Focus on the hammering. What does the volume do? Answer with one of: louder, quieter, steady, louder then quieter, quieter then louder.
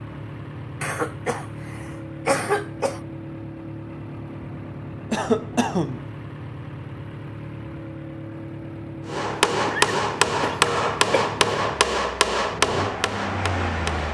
quieter.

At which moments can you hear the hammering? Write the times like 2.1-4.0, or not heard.
9.1-14.0.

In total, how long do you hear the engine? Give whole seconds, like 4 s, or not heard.
14 s.